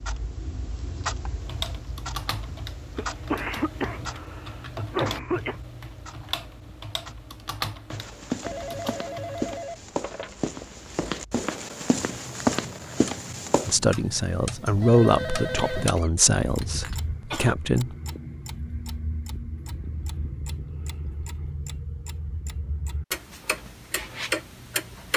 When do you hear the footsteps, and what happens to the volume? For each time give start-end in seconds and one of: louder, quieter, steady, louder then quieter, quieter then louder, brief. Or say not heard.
7.9-13.8 louder.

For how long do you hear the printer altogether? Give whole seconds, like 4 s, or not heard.
not heard.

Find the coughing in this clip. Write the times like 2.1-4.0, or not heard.
3.0-5.5, 15.6-17.6.